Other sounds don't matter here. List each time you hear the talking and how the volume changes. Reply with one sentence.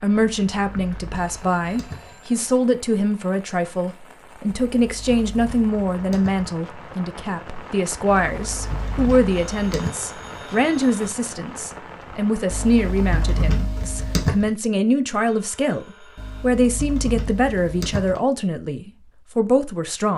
The talking can be heard from 0.0 to 20.1 s, at a steady volume.